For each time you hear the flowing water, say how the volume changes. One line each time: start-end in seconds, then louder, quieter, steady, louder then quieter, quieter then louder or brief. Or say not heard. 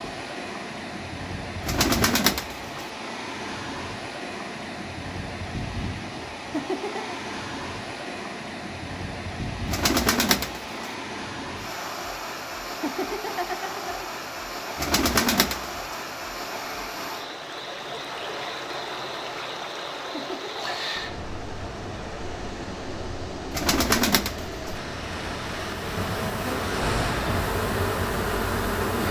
0.0-29.0 steady.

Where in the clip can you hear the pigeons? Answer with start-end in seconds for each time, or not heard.
1.6-2.7, 9.7-10.7, 14.8-16.0, 23.5-24.8.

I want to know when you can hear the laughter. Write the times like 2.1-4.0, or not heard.
6.5-7.2, 12.8-14.0, 20.1-20.8.